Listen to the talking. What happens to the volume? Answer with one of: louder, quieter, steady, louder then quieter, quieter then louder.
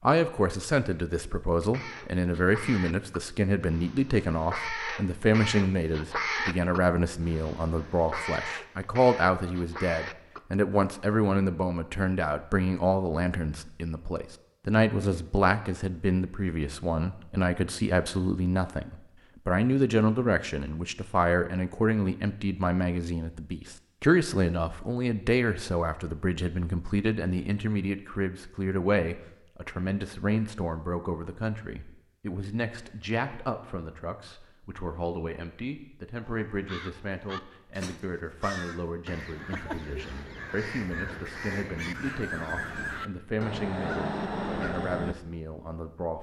quieter.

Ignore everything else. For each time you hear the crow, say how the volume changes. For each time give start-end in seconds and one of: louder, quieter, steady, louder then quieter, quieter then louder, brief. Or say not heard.
1.6-10.4 louder then quieter
36.5-45.1 louder.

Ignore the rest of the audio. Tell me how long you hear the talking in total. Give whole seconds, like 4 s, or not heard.
46 s.